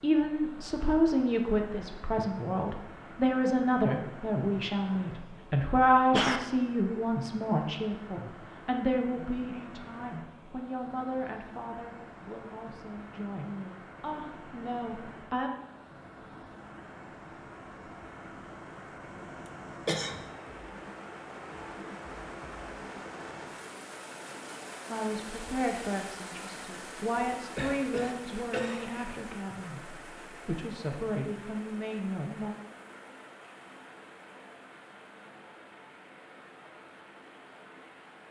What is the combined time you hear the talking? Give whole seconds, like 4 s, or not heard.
23 s.